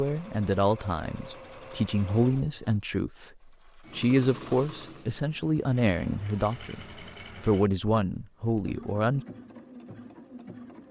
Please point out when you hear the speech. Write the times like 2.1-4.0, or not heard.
0.0-3.3, 4.0-6.8, 7.4-9.2.